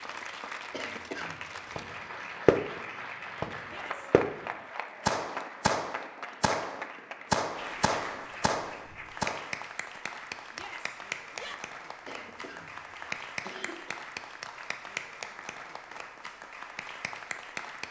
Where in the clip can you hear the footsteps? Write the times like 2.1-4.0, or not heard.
not heard.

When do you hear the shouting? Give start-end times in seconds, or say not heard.
3.6-4.1, 10.5-11.6.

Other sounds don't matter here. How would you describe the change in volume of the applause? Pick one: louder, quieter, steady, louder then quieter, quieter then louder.
steady.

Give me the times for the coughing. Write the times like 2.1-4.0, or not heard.
0.7-1.6, 12.1-13.9.